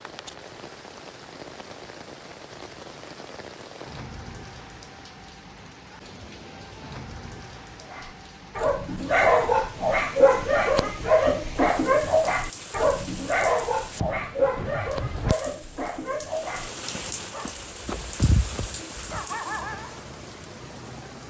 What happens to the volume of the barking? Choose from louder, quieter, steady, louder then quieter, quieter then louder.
quieter.